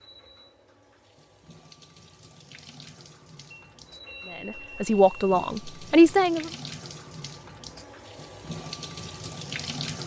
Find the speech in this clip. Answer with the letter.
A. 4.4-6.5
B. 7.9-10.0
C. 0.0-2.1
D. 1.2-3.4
A.